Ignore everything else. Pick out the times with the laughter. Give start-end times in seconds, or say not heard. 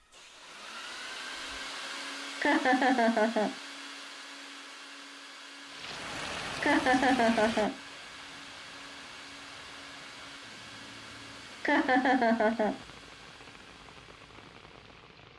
2.4-3.5, 6.6-7.8, 11.6-12.8.